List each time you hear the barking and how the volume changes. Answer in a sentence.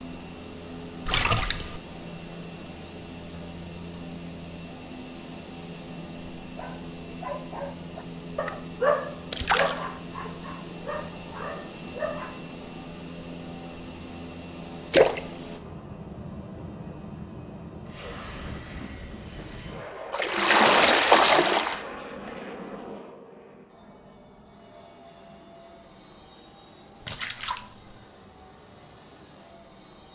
The barking can be heard from 6.5 to 12.4 s, getting louder then quieter.